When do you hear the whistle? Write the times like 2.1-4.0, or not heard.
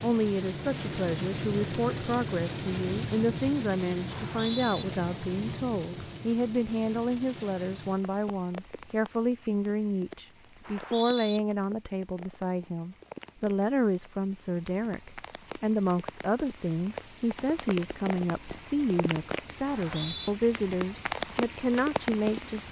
4.1-4.8, 10.6-11.4, 19.6-20.3.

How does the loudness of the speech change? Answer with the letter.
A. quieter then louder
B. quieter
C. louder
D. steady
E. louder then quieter
D.